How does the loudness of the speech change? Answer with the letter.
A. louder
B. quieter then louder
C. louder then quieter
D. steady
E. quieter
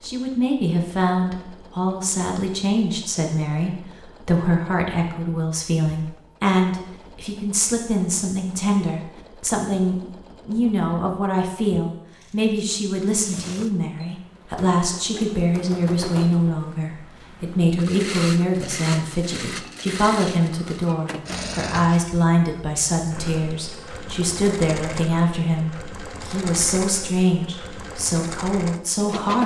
D.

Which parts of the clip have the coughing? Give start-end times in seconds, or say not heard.
not heard.